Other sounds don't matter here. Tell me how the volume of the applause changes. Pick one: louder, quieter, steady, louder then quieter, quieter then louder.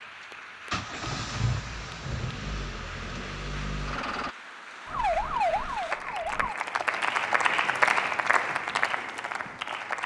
louder.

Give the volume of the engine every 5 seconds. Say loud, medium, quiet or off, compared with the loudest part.
loud, off.